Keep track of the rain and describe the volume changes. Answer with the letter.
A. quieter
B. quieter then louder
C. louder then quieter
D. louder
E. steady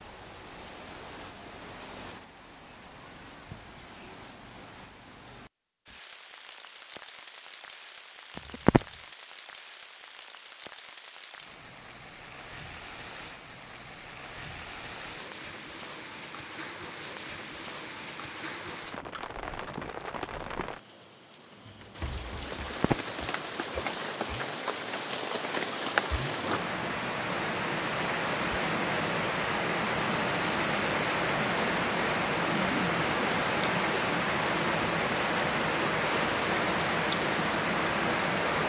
D.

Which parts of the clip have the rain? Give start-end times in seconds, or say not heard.
0.0-38.6.